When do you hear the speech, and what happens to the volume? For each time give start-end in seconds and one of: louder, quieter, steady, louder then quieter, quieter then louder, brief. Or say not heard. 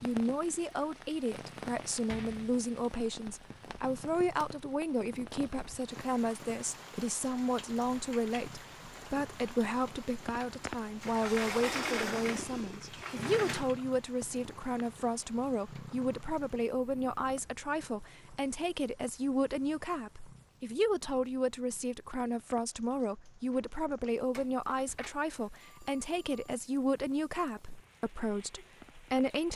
0.0-29.5 steady.